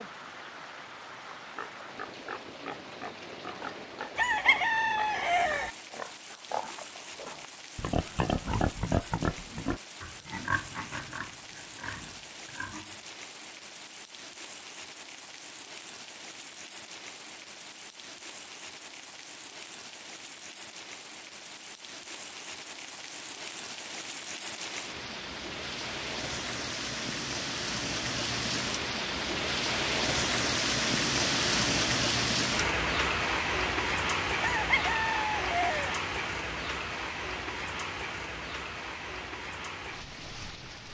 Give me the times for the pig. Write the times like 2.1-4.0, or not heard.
1.4-13.0.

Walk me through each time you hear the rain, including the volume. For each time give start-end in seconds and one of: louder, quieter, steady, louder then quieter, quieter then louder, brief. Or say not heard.
0.0-40.8 louder.